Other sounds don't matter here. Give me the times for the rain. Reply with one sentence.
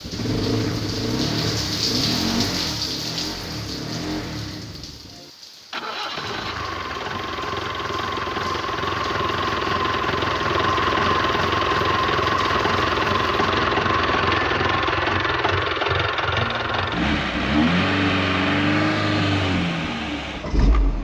The rain can be heard from 0.0 to 13.4 s.